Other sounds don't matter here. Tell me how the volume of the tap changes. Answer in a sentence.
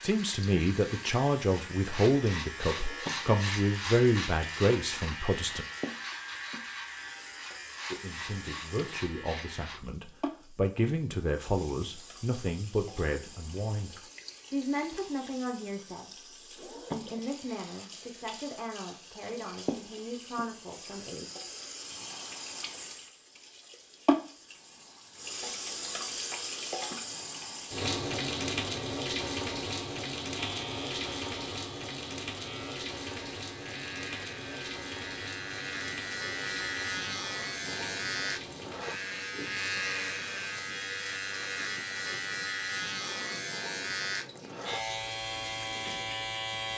The volume of the tap goes up, then down.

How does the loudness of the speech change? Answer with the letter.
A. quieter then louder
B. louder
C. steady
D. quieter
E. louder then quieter
D.